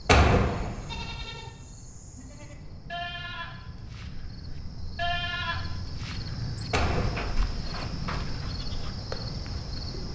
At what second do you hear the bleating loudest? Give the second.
5 s.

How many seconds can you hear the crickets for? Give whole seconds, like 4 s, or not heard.
10 s.